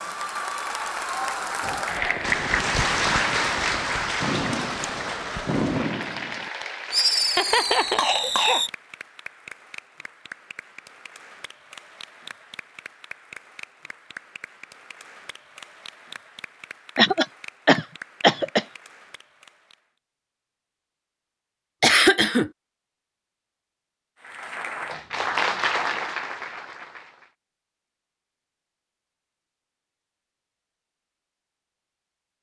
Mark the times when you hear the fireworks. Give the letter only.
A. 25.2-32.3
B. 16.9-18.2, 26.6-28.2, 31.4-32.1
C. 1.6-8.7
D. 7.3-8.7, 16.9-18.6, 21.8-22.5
C.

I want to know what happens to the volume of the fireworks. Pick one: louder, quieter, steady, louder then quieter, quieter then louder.
louder.